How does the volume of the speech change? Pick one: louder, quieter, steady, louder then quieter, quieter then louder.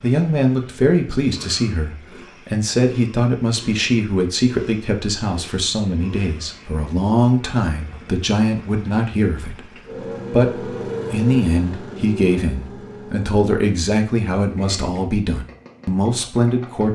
steady.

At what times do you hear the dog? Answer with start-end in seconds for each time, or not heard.
not heard.